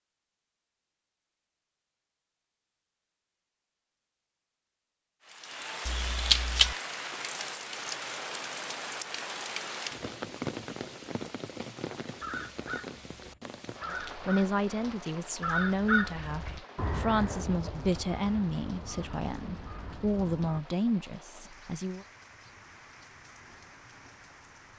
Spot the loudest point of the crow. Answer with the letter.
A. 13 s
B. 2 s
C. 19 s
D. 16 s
D.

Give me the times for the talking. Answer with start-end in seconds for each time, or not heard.
14.1-22.1.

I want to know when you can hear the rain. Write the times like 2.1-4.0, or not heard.
5.2-24.7.